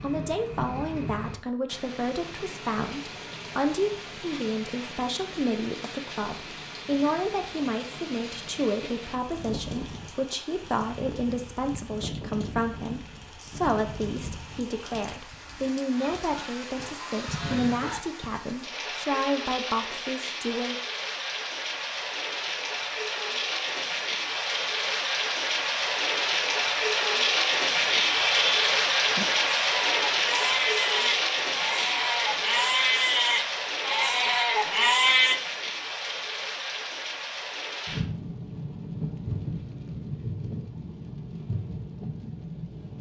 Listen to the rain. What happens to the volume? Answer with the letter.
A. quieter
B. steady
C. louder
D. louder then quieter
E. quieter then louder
D.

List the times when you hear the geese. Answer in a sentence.
You can hear the geese from 15.9 to 18.0 s.